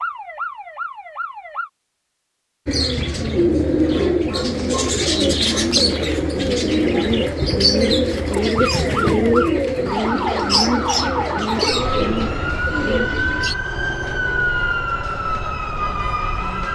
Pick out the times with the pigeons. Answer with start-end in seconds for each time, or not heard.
2.6-13.6.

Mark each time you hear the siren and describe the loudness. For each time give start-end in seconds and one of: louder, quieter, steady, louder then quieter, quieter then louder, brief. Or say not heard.
0.0-1.7 brief
8.3-16.7 steady.